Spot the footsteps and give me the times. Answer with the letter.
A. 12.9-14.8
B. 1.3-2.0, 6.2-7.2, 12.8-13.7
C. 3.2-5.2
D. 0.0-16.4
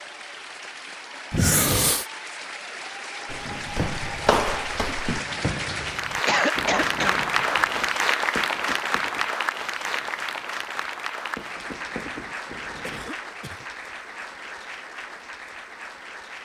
C.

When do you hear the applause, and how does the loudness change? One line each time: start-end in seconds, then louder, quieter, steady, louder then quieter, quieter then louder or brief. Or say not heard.
0.0-16.4 louder then quieter.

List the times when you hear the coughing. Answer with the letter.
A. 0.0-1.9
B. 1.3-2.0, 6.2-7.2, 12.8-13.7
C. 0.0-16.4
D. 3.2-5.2
B.